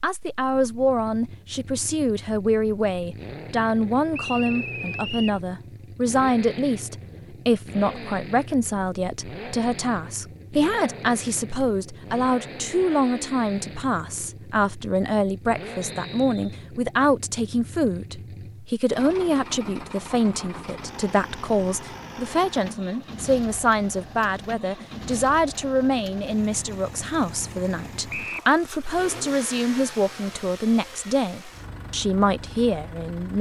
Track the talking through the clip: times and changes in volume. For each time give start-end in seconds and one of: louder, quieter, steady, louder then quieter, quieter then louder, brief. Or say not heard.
0.0-33.3 steady.